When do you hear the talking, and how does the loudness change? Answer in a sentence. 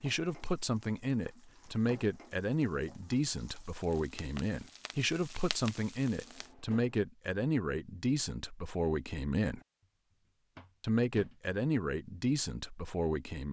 The talking can be heard from 0.0 to 9.6 s, at a steady volume; and briefly from 10.8 to 13.4 s.